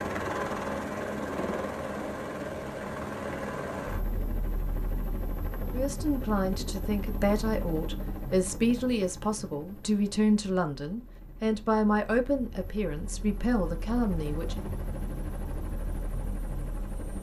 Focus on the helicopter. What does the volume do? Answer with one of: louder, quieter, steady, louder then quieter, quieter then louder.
quieter then louder.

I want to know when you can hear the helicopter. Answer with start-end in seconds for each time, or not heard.
0.0-17.1.